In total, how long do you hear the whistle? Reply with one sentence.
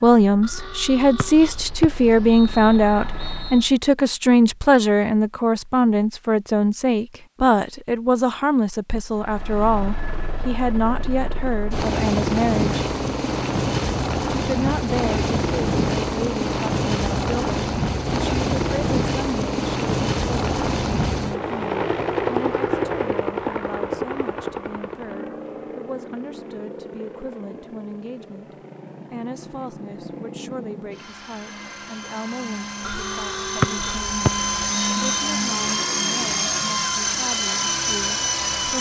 You can hear the whistle for 4 seconds altogether.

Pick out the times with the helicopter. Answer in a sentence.
You can hear the helicopter from 0.0 to 3.8 s and from 9.1 to 38.7 s.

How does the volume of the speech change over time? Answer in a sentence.
The loudness of the speech goes down.